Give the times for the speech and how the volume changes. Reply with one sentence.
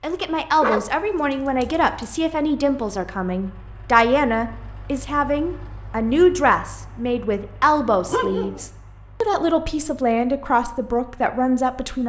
The speech can be heard from 0.0 to 12.0 s, at a steady volume.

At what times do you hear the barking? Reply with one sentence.
The barking can be heard from 0.6 to 1.9 s and from 8.1 to 8.7 s.